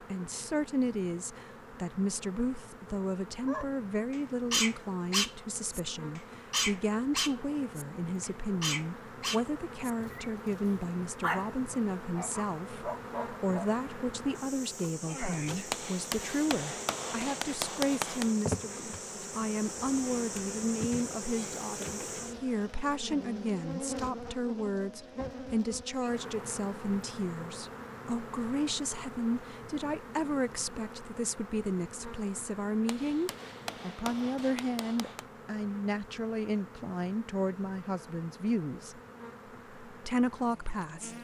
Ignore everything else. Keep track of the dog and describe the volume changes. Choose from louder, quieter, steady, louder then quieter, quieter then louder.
quieter.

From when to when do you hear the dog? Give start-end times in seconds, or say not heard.
3.5-13.7.